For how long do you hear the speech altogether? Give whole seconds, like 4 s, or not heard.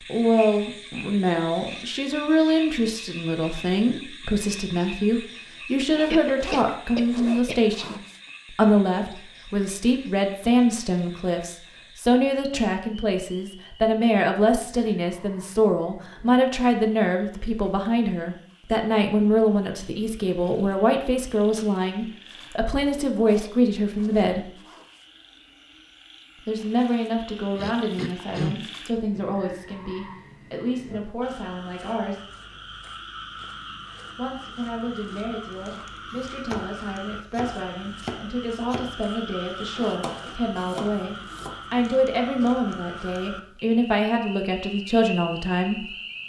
42 s.